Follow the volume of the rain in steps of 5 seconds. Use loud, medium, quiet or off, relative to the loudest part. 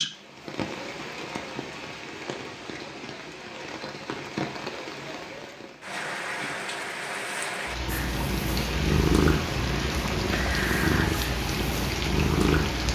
medium, loud, loud.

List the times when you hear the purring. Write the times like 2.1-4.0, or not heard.
7.8-12.8.